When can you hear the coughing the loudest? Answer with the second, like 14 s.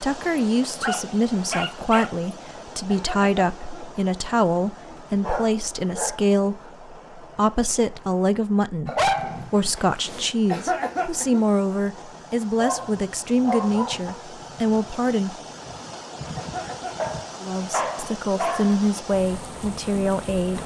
11 s.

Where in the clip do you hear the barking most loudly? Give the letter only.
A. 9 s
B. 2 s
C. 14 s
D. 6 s
A.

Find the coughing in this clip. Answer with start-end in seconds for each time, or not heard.
2.9-4.0, 10.5-11.4, 16.4-17.1.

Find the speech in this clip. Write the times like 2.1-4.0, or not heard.
0.0-15.3, 17.4-20.6.